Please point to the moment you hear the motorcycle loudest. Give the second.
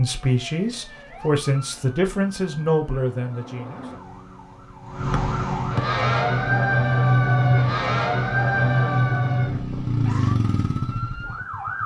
10 s.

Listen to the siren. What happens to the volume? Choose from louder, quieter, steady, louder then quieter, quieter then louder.
louder then quieter.